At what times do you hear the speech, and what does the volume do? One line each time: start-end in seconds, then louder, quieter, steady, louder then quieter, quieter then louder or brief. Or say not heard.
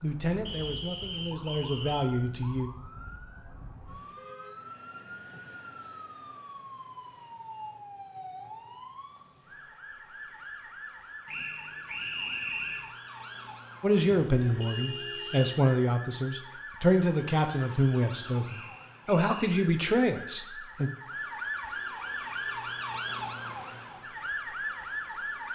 0.0-2.7 brief
13.8-20.9 steady.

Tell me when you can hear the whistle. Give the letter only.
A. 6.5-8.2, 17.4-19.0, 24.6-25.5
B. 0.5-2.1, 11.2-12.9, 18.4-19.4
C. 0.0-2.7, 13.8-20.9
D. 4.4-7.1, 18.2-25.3
B.